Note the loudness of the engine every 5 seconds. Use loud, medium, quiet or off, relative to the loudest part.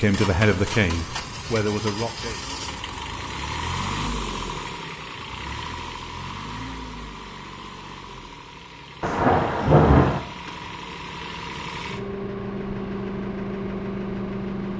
loud, medium, loud.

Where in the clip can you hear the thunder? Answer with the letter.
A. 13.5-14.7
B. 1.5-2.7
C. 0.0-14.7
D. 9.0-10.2
D.